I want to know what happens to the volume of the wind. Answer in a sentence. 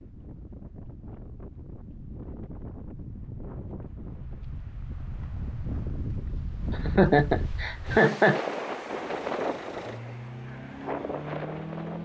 The loudness of the wind goes up.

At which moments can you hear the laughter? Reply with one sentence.
The laughter can be heard from 6.7 to 8.4 s.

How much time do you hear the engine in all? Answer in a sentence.
The engine can be heard for 3 seconds in total.